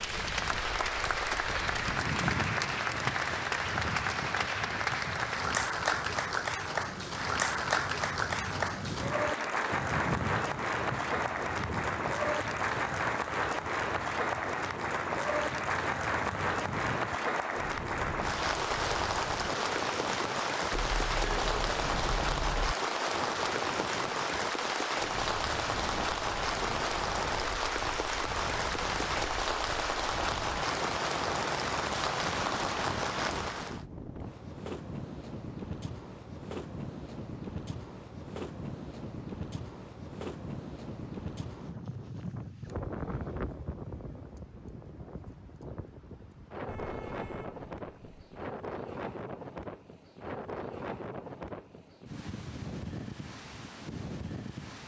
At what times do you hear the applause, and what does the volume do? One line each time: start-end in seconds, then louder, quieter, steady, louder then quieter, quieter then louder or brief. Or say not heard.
0.0-33.9 steady.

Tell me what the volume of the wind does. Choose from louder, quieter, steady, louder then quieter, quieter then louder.
steady.